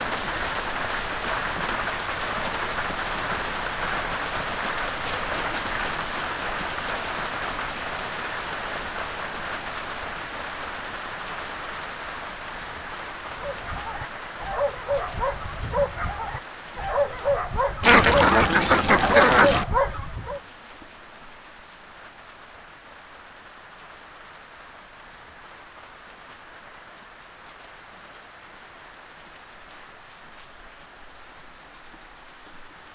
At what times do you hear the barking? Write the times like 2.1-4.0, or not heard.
13.3-20.4.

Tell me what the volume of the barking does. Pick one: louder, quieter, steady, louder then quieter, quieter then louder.
louder.